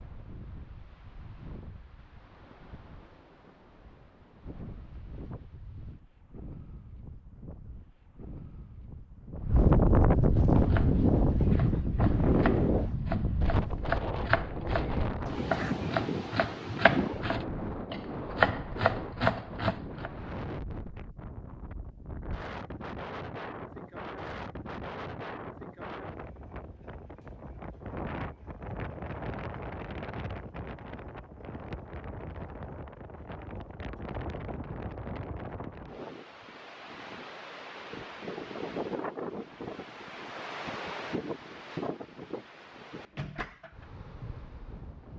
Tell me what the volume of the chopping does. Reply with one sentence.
The volume of the chopping goes up.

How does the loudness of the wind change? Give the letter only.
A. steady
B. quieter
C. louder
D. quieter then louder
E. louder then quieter
E.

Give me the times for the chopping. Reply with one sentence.
You can hear the chopping from 10.3 to 20.1 s.